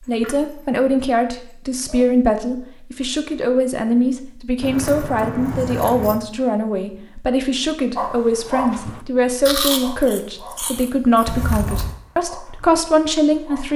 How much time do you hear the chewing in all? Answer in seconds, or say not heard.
2 s.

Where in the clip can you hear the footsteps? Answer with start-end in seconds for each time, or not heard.
not heard.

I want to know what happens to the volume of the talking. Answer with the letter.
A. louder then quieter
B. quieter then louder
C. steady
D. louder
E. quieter
C.